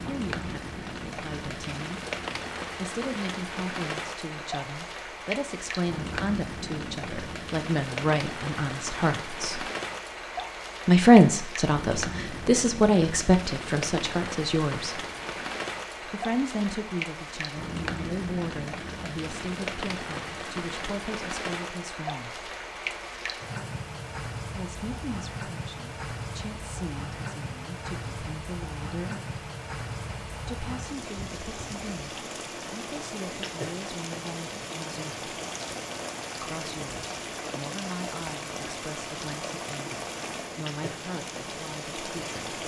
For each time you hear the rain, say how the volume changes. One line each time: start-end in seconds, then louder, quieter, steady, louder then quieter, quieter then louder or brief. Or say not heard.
0.0-42.6 steady.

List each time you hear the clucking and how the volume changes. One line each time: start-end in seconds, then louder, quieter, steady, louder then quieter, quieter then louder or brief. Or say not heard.
not heard.